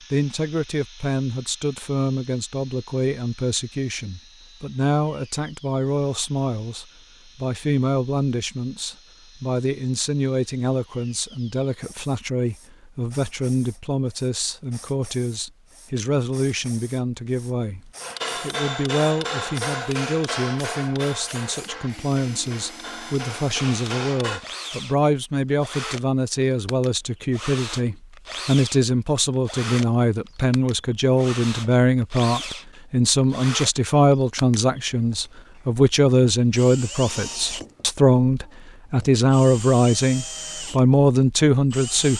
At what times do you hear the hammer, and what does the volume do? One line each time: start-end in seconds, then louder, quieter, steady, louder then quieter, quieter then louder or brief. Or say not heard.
18.0-24.4 quieter then louder.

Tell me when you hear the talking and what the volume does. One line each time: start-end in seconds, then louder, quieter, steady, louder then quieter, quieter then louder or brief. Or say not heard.
0.1-42.1 louder.